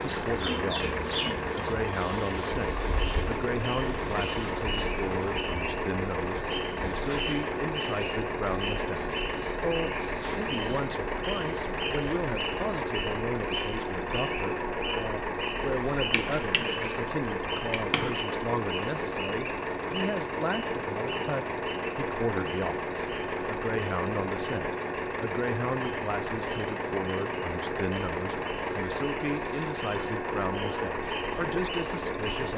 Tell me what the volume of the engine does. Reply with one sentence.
The loudness of the engine stays about the same.